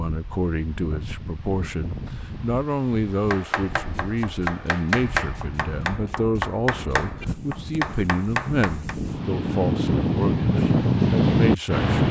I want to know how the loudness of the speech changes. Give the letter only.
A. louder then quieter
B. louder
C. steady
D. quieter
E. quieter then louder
C.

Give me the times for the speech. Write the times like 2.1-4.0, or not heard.
0.0-11.9.